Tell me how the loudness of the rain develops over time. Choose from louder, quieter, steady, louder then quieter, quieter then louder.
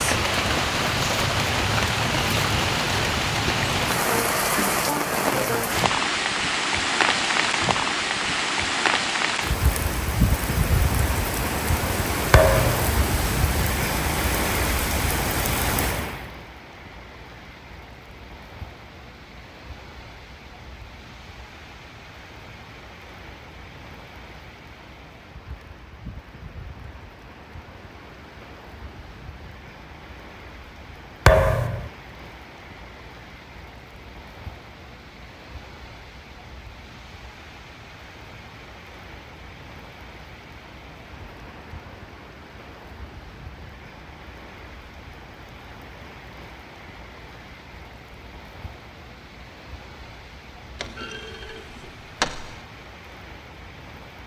quieter.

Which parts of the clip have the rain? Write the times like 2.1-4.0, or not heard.
0.0-54.2.